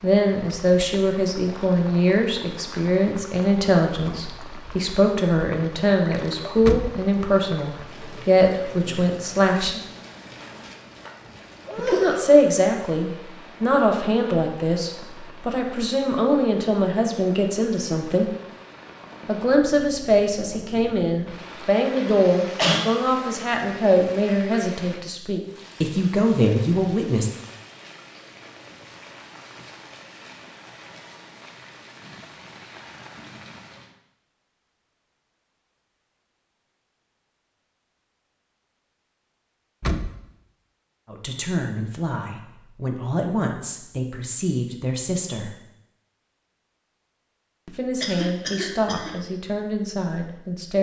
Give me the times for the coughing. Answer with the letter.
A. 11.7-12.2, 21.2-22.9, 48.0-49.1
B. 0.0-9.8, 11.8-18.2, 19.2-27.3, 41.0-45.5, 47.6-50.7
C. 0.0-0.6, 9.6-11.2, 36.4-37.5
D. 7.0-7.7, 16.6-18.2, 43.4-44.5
A.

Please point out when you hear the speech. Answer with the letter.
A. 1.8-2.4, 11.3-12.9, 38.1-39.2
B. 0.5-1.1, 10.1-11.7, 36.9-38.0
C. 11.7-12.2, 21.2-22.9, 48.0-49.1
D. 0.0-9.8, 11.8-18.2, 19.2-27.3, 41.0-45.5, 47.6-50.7
D.